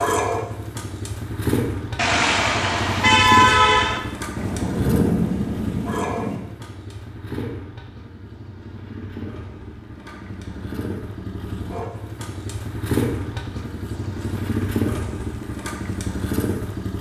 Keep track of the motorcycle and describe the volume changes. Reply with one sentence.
The volume of the motorcycle goes down, then up.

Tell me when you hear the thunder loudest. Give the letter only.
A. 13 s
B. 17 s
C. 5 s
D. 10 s
C.